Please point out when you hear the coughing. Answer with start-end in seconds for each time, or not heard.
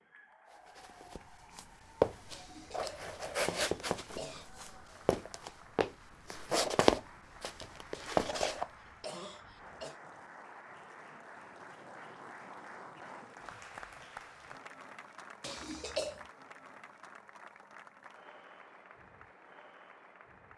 2.3-4.5, 7.9-9.9, 15.4-16.2.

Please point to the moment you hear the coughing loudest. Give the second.
16 s.